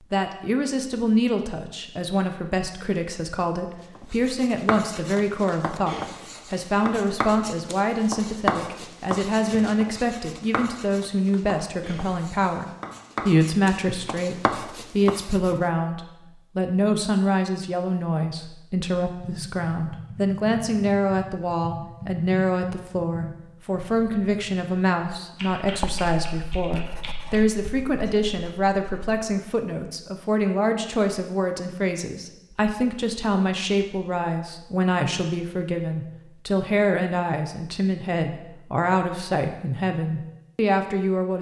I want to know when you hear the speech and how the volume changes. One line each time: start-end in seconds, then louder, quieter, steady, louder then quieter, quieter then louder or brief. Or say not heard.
0.1-41.3 steady.